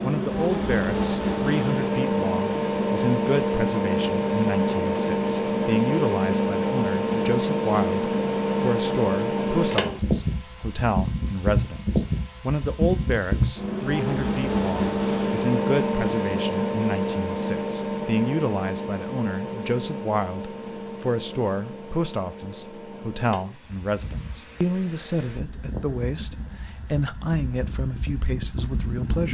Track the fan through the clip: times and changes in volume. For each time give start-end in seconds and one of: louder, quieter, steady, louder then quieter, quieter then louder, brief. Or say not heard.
0.0-29.2 quieter.